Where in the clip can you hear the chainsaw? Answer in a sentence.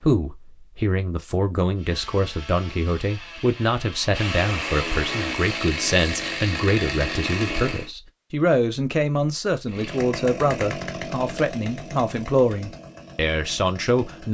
You can hear the chainsaw from 1.8 to 7.9 s and from 9.7 to 14.2 s.